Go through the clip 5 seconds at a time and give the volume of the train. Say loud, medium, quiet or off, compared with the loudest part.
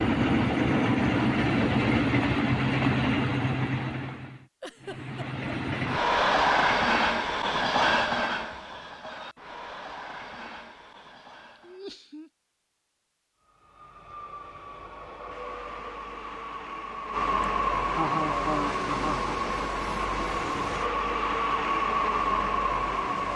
loud, loud, quiet, medium, loud.